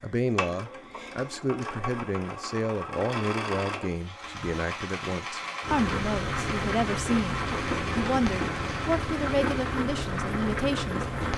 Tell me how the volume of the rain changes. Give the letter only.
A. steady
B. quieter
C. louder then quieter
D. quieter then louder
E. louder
A.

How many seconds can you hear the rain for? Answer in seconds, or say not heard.
6 s.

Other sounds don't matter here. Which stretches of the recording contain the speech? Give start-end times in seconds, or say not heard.
0.0-11.1.